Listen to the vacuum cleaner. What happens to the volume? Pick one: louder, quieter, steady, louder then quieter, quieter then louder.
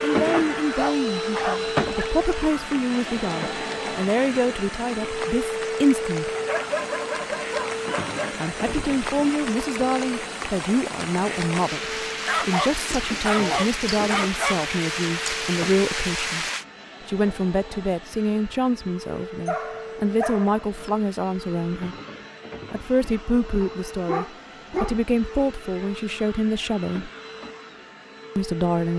quieter.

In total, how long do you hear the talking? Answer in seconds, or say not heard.
24 s.